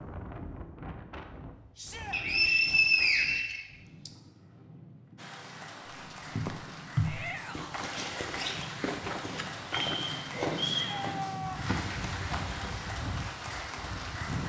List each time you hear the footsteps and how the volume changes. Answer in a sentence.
You can hear the footsteps from 6.1 to 12.9 s, getting quieter.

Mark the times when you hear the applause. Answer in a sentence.
The applause can be heard from 5.2 to 14.4 s.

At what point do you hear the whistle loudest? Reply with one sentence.
The loudest moment of the whistle is at 3 seconds.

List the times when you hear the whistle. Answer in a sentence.
The whistle can be heard from 2.1 to 4.1 s and from 9.8 to 10.9 s.